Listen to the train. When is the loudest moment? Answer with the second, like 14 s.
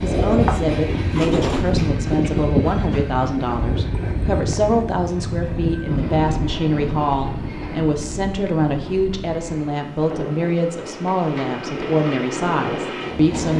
2 s.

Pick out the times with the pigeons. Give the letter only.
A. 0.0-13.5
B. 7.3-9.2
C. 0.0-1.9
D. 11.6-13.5
C.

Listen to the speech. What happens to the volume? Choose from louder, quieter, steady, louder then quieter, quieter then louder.
steady.